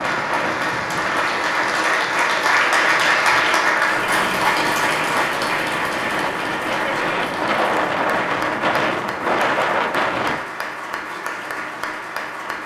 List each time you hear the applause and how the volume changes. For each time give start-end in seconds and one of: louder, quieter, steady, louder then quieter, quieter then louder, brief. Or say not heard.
0.0-12.6 quieter.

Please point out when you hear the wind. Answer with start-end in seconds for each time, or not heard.
0.0-10.4.